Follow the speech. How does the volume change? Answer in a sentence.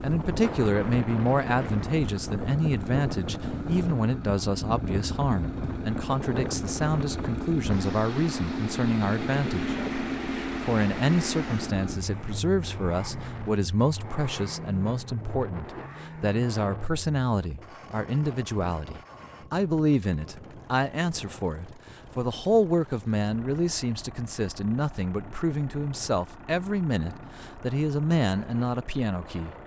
The volume of the speech stays about the same.